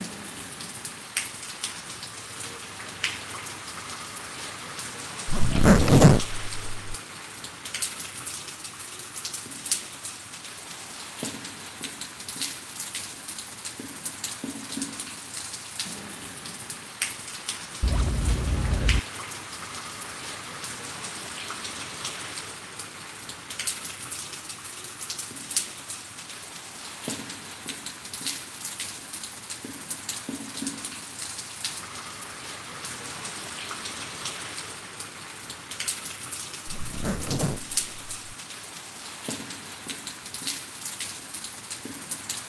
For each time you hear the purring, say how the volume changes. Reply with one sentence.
You can't hear the purring here.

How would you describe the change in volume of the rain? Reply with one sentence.
The loudness of the rain stays about the same.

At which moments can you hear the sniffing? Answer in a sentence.
The sniffing can't be heard in this clip.